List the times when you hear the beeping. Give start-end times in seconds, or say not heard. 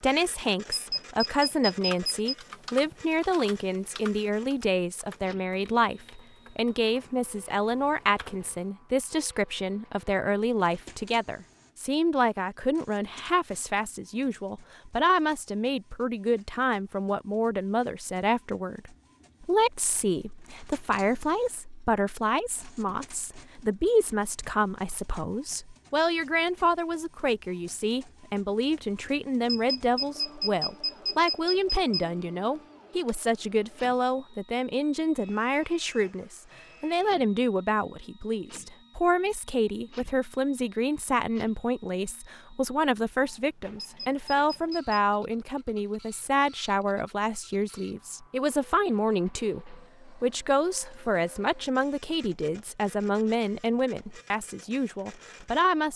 0.7-2.4, 29.4-32.0, 43.8-45.0.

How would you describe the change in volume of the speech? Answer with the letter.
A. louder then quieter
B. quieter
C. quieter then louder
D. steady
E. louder
D.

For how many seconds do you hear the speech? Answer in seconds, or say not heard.
56 s.